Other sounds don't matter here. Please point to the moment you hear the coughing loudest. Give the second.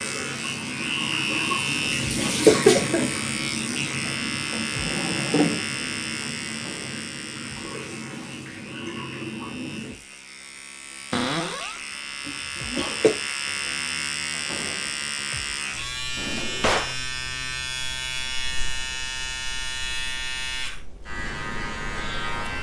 3 s.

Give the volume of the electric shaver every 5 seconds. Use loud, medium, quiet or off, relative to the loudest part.
loud, medium, loud, loud, loud.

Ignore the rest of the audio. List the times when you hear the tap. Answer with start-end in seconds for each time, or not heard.
0.0-10.0.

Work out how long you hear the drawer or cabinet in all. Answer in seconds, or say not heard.
3 s.